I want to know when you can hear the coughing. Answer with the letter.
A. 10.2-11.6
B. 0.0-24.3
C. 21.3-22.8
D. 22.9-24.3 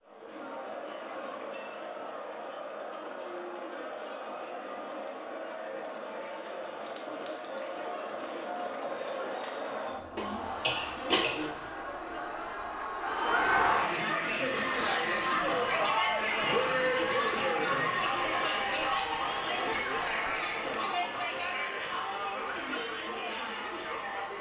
A.